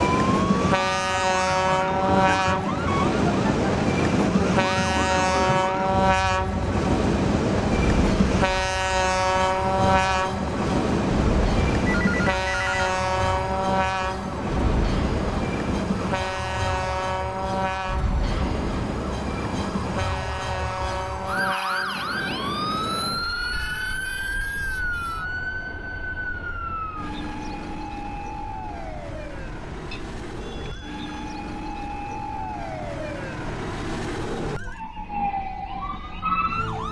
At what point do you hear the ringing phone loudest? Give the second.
12 s.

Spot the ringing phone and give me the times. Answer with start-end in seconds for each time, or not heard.
11.8-12.9, 29.9-31.2.